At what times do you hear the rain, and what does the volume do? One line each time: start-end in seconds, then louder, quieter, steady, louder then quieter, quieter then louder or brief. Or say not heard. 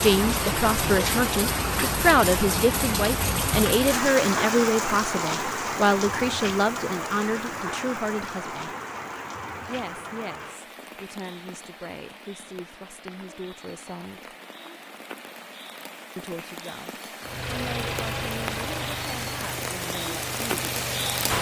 0.0-21.3 quieter then louder.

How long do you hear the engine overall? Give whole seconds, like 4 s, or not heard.
4 s.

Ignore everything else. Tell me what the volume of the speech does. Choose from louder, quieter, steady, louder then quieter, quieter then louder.
quieter.